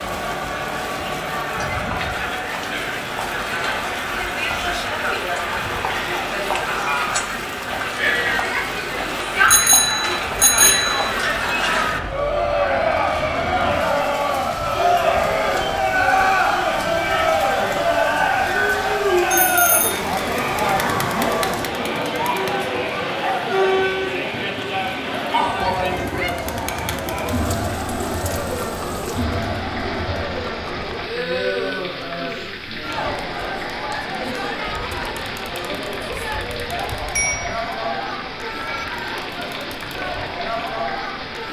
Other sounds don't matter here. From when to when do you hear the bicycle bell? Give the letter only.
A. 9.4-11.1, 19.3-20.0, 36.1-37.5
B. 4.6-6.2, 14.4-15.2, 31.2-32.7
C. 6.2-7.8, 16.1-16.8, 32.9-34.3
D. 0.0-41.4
A.